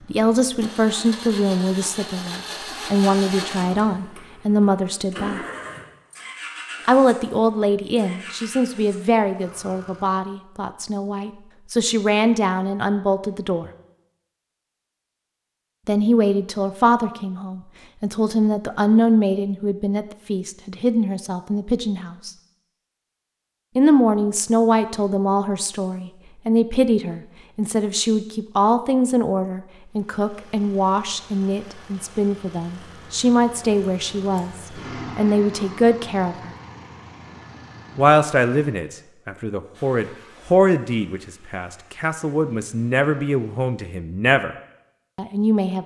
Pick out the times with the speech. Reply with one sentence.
The speech can be heard from 0.1 to 5.4 s, from 6.8 to 13.7 s, from 15.8 to 22.3 s, from 23.8 to 36.5 s, from 38.0 to 44.5 s and from 45.1 to 45.8 s.